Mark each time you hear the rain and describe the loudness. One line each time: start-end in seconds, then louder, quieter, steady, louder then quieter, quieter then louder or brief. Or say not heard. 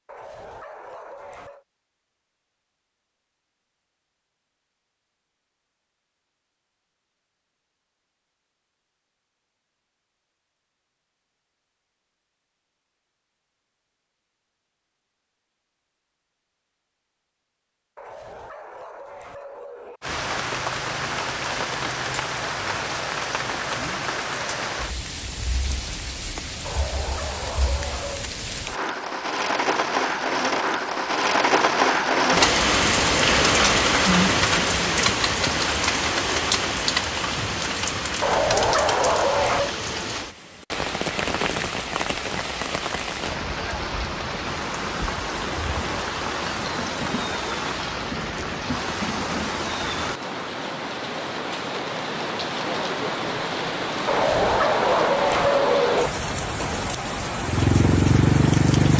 20.0-58.9 louder then quieter.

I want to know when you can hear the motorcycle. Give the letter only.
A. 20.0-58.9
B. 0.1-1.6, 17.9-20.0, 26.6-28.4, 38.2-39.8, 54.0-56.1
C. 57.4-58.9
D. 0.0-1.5
C.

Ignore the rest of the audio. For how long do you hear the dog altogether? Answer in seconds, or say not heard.
9 s.